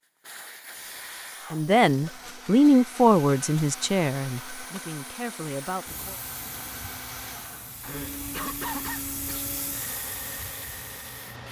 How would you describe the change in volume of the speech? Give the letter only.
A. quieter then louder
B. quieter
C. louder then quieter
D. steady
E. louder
B.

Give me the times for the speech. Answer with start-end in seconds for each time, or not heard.
1.5-6.2.